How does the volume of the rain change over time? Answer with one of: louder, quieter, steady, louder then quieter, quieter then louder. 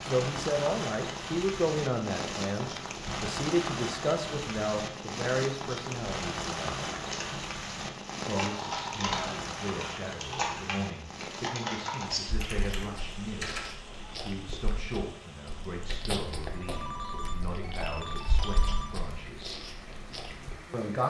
quieter.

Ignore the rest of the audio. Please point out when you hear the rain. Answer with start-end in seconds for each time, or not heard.
0.0-21.0.